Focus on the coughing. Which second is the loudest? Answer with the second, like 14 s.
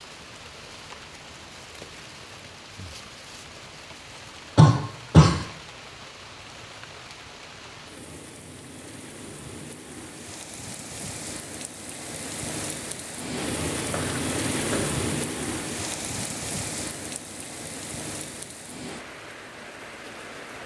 5 s.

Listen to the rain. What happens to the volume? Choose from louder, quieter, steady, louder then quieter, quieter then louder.
louder then quieter.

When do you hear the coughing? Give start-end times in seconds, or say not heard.
4.5-5.3, 13.8-14.9.